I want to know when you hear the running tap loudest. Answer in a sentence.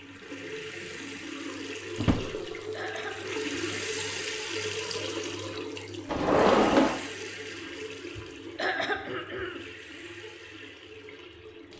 The volume of the running tap peaks at 4 seconds.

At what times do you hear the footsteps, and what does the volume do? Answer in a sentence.
The footsteps can't be heard in this clip.